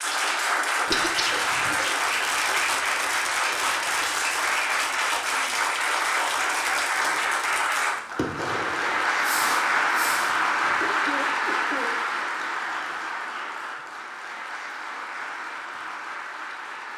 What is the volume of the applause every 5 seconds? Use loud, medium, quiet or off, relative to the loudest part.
loud, loud, loud, medium.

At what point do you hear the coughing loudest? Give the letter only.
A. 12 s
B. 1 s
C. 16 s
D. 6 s
B.